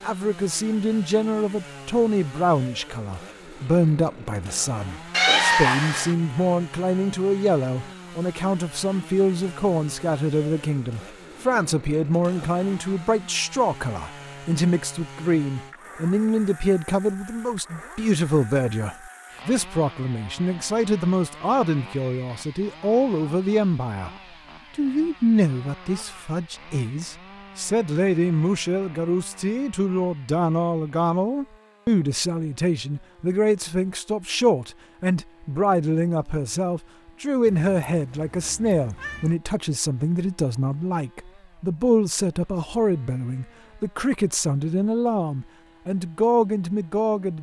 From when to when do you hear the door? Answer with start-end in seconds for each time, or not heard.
not heard.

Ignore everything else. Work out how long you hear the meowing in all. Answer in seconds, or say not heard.
3 s.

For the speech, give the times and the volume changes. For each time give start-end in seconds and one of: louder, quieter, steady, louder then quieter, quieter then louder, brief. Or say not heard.
0.0-24.1 steady
24.8-47.3 steady.